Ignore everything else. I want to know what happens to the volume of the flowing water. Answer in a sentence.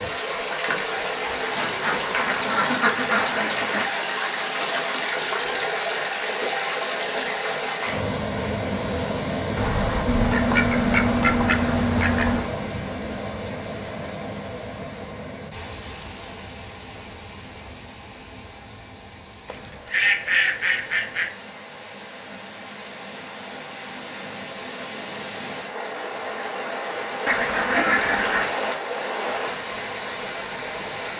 The volume of the flowing water goes down, then up.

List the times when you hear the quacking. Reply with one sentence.
You can hear the quacking from 1.6 to 3.9 s, from 9.6 to 12.5 s, from 19.4 to 21.3 s and from 27.2 to 28.5 s.